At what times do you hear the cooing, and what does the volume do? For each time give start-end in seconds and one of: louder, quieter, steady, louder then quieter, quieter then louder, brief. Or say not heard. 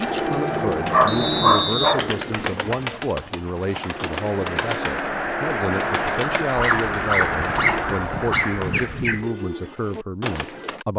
0.0-10.8 steady.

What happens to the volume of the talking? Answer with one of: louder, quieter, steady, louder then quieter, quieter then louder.
steady.